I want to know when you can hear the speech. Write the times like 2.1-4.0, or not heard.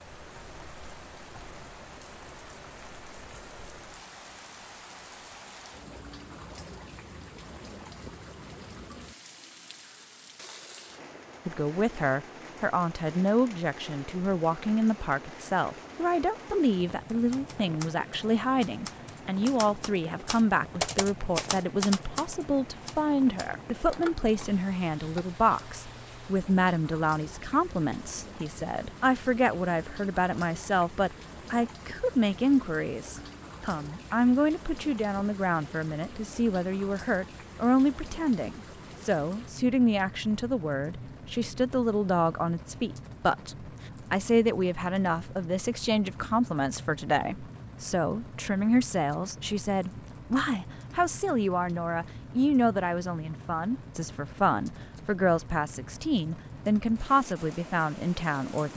11.4-58.7.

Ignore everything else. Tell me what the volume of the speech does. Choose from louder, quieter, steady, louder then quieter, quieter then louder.
steady.